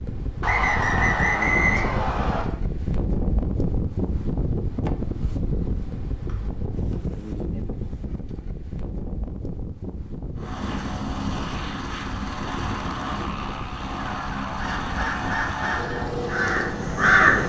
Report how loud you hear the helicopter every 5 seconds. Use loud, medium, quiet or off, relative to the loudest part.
off, off, loud, loud.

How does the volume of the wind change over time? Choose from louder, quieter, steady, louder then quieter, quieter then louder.
quieter.